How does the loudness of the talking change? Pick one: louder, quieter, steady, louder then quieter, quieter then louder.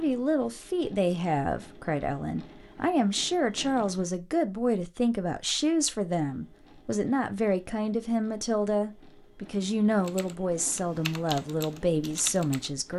steady.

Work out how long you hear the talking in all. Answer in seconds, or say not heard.
13 s.